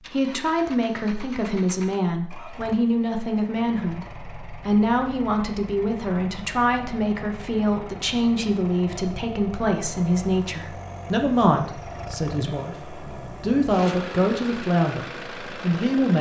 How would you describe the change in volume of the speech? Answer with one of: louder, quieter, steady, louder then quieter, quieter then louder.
steady.